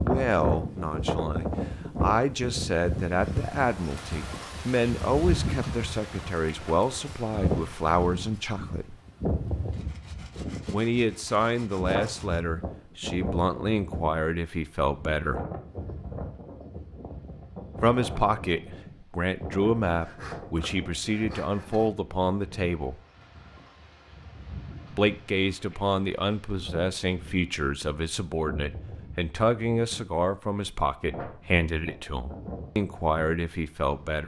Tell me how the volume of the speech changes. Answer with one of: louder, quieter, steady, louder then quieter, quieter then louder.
steady.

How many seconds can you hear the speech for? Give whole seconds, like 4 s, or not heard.
28 s.